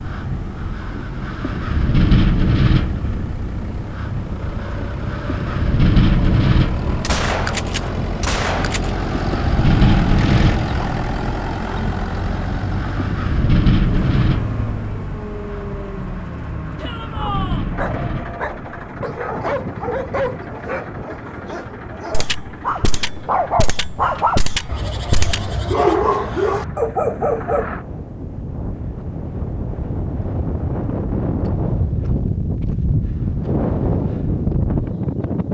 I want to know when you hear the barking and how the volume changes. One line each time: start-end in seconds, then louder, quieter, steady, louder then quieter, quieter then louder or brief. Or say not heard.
17.1-27.7 louder.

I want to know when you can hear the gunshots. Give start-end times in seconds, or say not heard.
7.0-8.9, 22.1-25.5.